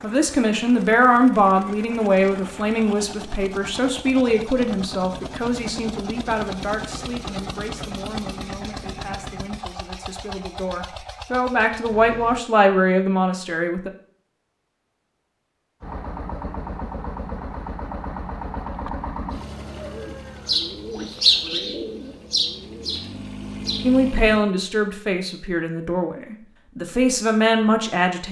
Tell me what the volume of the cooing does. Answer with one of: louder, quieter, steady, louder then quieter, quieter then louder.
louder then quieter.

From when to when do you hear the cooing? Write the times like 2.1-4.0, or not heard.
19.3-24.6.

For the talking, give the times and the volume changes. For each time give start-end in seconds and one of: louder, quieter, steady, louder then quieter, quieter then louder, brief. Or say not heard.
0.0-13.9 quieter then louder
23.8-28.2 quieter then louder.